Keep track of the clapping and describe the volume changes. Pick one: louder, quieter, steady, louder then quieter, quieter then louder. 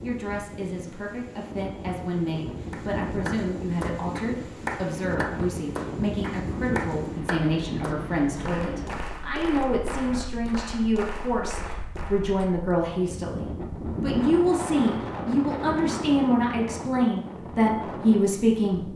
quieter.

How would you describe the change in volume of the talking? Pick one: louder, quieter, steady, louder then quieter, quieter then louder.
louder.